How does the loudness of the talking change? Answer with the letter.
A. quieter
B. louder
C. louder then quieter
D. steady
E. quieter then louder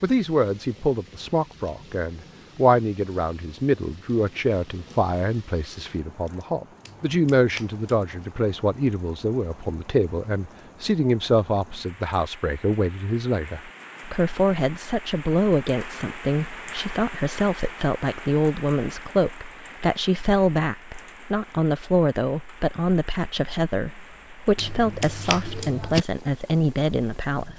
D.